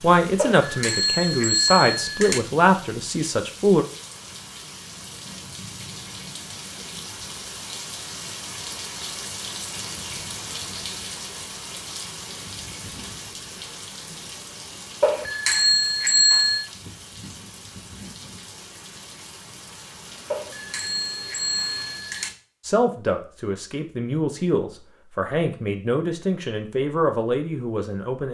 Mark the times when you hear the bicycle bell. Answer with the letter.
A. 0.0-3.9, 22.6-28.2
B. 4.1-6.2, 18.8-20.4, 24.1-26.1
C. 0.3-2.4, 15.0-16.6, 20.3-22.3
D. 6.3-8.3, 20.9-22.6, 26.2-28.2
C.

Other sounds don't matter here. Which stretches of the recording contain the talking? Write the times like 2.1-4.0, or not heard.
0.0-3.9, 22.6-28.2.